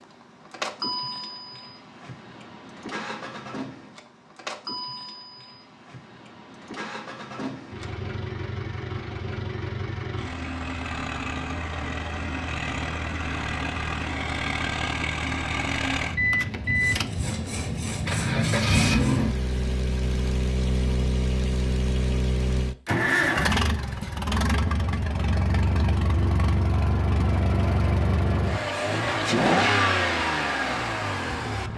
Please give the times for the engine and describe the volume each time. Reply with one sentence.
You can hear the engine from 0.0 to 31.7 s, getting louder.